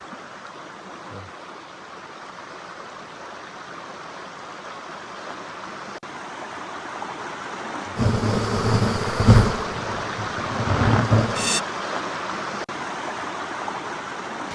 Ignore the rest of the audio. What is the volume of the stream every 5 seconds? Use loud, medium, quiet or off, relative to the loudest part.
medium, loud, loud.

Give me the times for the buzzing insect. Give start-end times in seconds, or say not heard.
8.0-11.6.